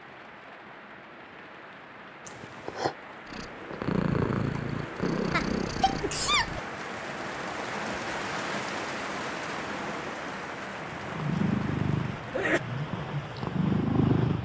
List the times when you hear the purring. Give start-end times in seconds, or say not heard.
3.2-6.7, 10.8-14.4.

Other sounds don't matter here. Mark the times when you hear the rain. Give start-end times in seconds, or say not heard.
0.0-14.4.